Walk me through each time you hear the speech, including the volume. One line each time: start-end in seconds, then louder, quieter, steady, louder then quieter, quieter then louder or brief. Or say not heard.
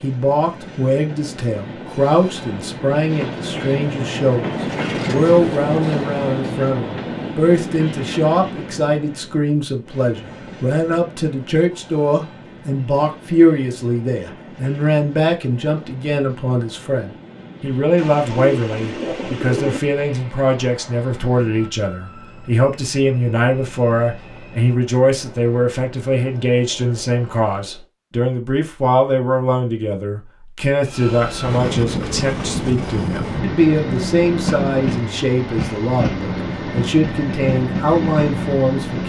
0.0-39.0 steady.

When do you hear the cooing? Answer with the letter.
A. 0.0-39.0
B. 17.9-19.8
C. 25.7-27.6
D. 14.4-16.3
B.